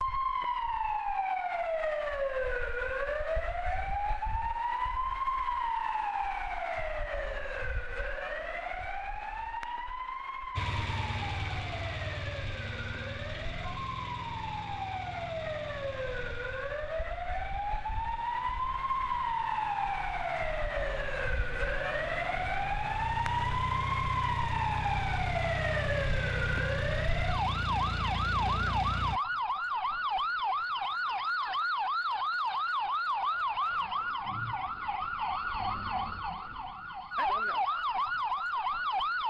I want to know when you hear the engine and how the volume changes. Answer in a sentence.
The engine can be heard from 10.6 to 29.2 s, getting quieter then louder.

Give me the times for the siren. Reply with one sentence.
The siren can be heard from 0.0 to 39.2 s.